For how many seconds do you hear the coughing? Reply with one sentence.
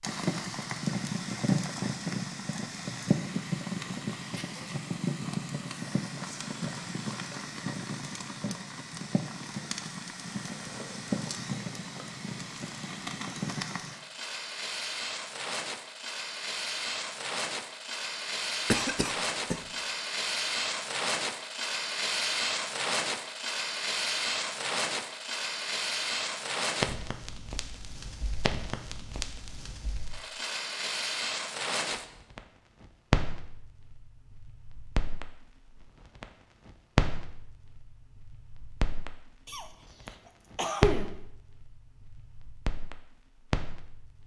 The coughing can be heard for 3 seconds in total.